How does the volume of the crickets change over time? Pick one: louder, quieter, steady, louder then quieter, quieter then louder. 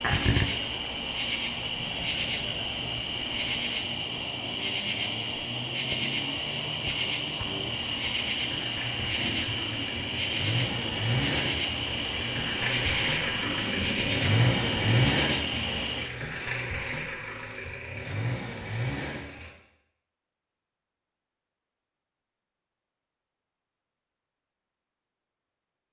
steady.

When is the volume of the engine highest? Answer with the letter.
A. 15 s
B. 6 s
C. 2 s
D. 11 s
A.